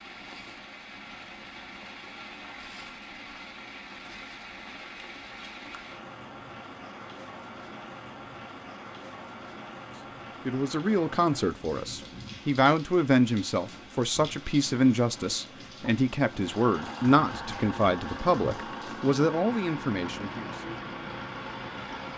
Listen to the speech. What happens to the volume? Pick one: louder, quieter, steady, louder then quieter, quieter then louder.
steady.